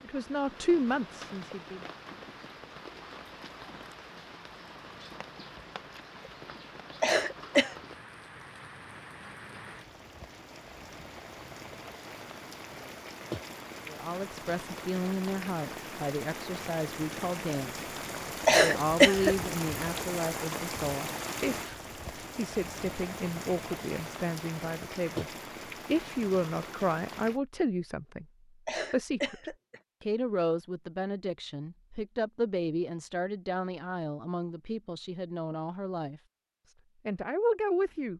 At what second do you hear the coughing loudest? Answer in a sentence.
The volume of the coughing peaks at 19 seconds.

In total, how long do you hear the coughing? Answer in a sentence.
You can hear the coughing for 3 seconds altogether.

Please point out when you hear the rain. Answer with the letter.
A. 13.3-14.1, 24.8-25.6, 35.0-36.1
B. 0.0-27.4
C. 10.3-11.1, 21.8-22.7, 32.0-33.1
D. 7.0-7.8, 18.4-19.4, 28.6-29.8
B.